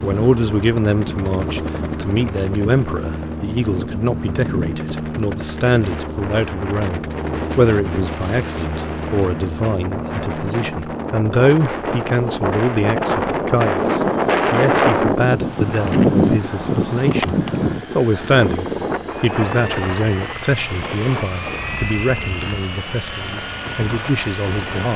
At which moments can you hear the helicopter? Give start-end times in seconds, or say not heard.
0.0-24.9.